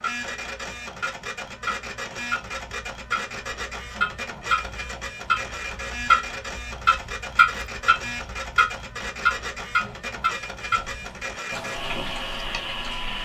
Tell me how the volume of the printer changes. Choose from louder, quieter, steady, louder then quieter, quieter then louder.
steady.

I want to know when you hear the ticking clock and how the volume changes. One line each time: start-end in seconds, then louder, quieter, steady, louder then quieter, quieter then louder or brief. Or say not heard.
0.0-13.2 louder then quieter.